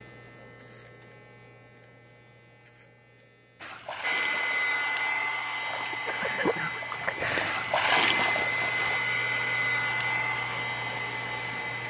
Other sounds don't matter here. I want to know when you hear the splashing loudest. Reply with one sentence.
The loudest moment of the splashing is at 8 seconds.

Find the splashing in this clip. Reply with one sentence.
The splashing can be heard from 3.6 to 9.0 s.